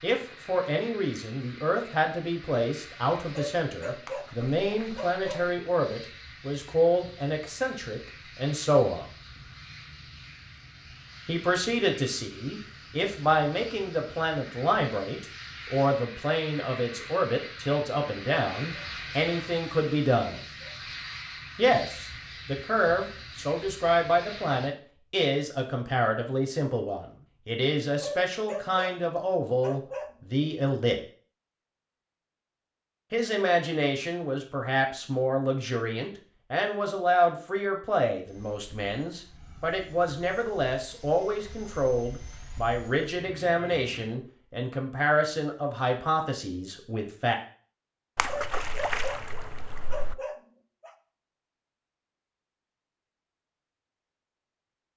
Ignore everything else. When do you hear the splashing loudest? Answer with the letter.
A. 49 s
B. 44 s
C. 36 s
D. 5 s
A.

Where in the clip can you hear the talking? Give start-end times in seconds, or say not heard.
0.0-9.1, 11.2-20.4, 21.6-30.9, 33.1-47.4.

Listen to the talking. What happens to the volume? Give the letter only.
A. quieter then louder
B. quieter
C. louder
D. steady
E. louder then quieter
D.